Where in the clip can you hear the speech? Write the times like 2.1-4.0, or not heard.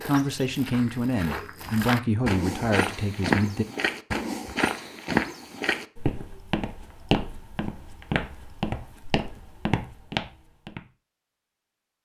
0.0-3.6.